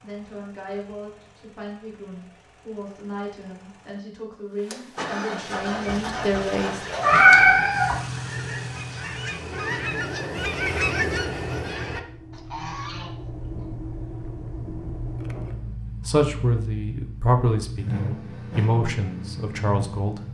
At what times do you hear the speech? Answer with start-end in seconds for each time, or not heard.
0.0-6.8, 16.1-20.2.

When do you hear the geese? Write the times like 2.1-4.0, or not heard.
5.6-13.7.